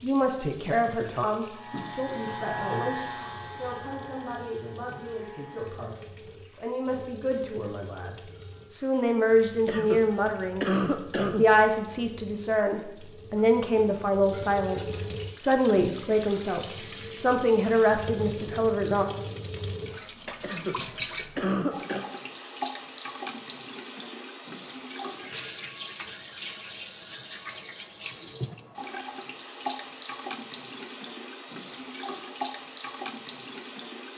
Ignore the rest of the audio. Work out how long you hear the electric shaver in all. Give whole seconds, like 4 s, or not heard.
4 s.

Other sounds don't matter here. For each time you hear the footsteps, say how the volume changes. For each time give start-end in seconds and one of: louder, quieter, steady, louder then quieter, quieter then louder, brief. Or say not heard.
not heard.